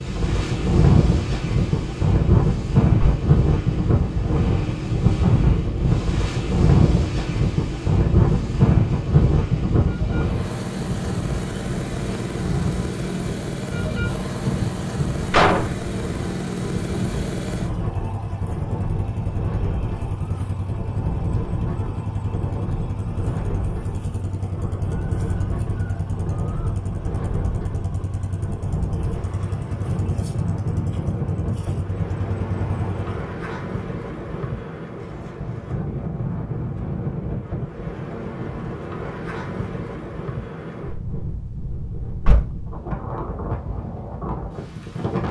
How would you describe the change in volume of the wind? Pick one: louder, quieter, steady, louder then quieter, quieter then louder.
quieter.